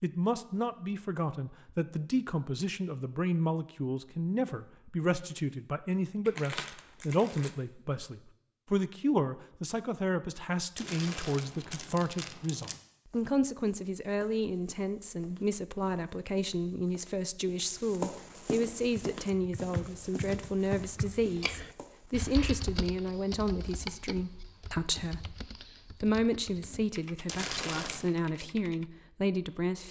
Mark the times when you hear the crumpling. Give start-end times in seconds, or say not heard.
6.2-7.5, 10.8-12.8, 27.2-28.1.